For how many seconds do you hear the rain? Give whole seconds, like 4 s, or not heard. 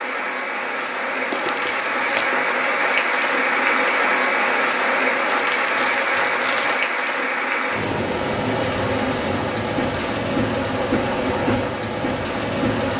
13 s.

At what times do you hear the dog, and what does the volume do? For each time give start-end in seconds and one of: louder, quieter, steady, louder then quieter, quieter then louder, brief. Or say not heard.
not heard.